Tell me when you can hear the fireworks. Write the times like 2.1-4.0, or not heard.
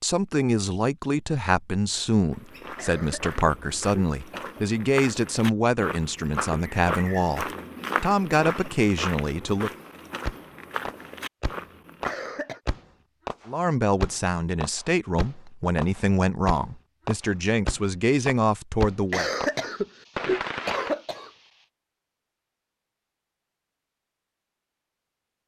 9.8-20.9.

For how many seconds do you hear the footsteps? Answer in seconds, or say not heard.
10 s.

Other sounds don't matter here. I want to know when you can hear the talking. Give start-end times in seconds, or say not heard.
0.0-9.7, 13.4-19.3.